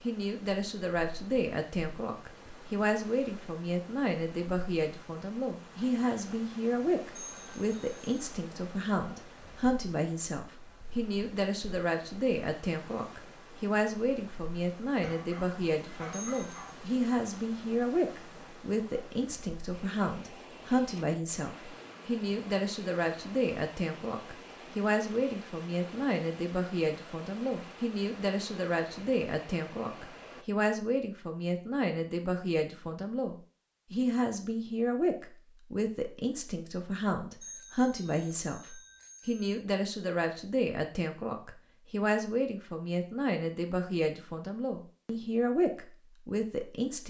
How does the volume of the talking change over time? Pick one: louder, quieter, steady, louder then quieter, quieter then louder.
steady.